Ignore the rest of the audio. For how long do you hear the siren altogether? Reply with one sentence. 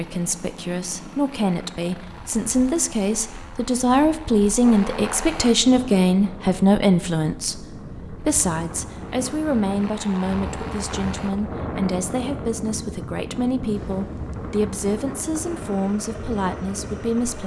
The siren can't be heard in this clip.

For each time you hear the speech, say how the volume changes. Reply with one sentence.
The speech can be heard from 0.0 to 17.4 s, getting louder then quieter.